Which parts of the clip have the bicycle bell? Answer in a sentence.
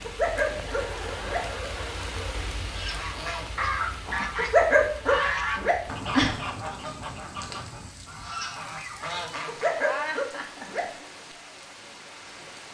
You can't hear the bicycle bell here.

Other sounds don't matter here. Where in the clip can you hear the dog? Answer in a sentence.
The dog can be heard from 0.0 to 1.4 s, from 4.3 to 6.3 s and from 9.4 to 10.8 s.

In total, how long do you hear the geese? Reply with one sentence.
The geese can be heard for 7 seconds in total.